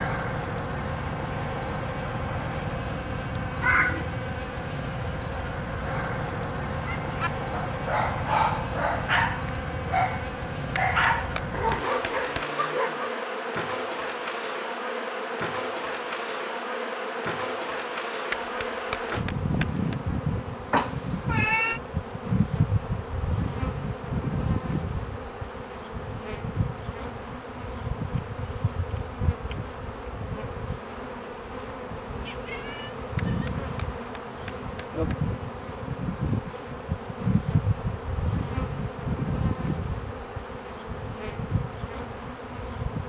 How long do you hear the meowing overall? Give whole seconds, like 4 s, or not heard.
3 s.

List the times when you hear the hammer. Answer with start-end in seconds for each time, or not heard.
10.8-12.4, 18.3-20.0, 33.1-35.2.